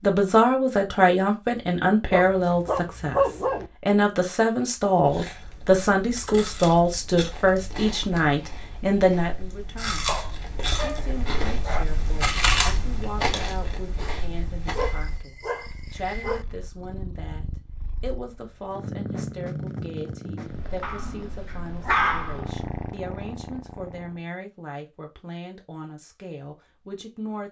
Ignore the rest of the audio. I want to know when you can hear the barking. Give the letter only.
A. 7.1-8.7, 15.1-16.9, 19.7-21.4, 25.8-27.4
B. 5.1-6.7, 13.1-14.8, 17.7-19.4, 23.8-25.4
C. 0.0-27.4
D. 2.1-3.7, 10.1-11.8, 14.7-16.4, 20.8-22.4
D.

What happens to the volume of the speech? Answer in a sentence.
The loudness of the speech goes down.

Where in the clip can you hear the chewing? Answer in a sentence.
The chewing can be heard from 5.0 to 15.2 s.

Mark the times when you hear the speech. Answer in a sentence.
You can hear the speech from 0.0 to 27.4 s.